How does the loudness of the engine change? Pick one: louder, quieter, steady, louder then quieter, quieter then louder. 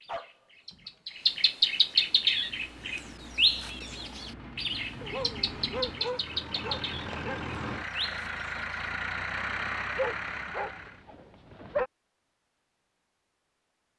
louder.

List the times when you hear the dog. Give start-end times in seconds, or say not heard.
0.1-1.4, 5.0-7.5, 9.9-11.9.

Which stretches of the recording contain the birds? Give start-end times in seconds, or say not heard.
0.0-8.7.